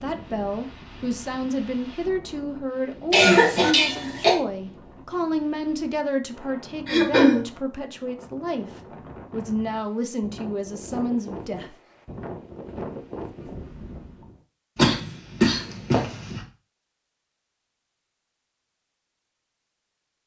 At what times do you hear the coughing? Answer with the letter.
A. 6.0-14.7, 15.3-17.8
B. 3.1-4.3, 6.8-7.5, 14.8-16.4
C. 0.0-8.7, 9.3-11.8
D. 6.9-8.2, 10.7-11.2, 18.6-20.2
B.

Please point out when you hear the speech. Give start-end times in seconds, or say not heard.
0.0-8.7, 9.3-11.8.